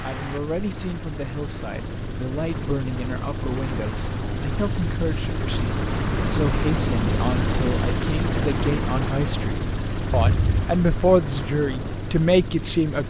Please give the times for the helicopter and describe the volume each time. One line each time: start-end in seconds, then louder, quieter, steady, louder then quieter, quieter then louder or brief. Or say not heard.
0.0-13.0 louder then quieter.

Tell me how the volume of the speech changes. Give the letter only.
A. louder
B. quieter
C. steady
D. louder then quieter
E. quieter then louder
A.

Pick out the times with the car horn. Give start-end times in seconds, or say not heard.
10.1-10.7.